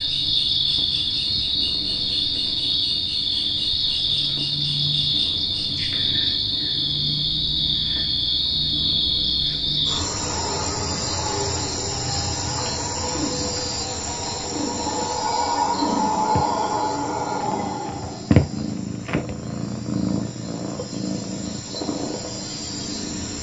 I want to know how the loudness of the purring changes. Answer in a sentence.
The volume of the purring goes up.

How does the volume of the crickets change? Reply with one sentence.
The volume of the crickets goes down.